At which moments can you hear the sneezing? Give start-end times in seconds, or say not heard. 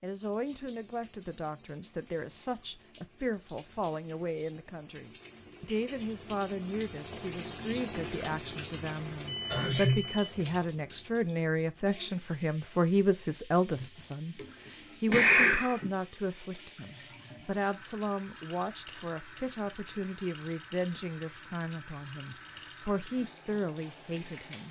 8.8-10.1, 13.8-14.4, 15.1-15.9.